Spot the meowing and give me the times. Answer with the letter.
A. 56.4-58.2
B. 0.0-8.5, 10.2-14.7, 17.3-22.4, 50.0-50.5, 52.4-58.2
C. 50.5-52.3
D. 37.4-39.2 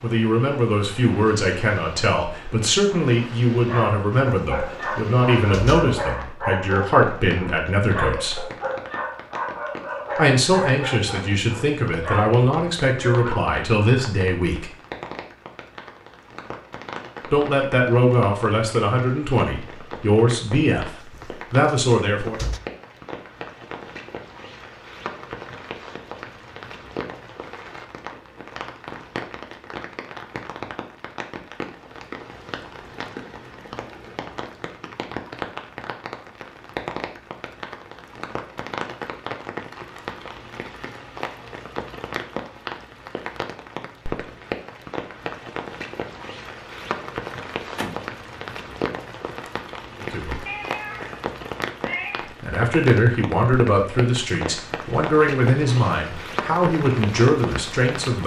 C.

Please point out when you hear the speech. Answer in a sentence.
You can hear the speech from 0.0 to 8.5 s, from 10.2 to 14.7 s, from 17.3 to 22.4 s, from 50.0 to 50.5 s and from 52.4 to 58.2 s.